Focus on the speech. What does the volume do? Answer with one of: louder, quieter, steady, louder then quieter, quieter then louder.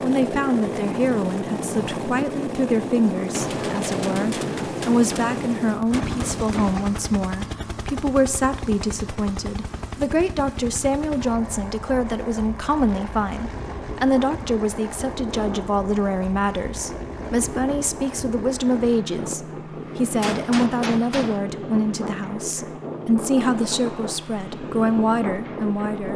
steady.